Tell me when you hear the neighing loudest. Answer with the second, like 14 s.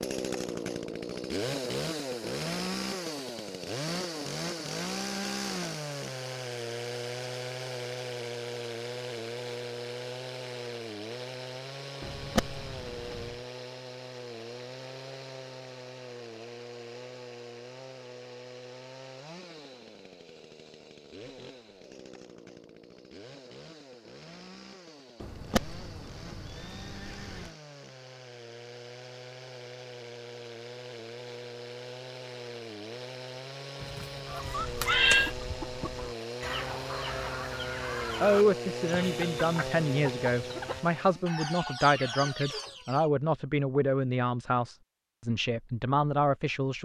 35 s.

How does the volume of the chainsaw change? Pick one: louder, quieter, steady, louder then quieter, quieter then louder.
quieter then louder.